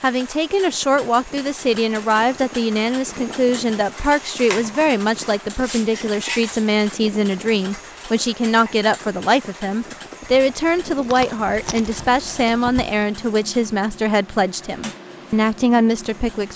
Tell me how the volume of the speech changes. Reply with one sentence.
The volume of the speech stays about the same.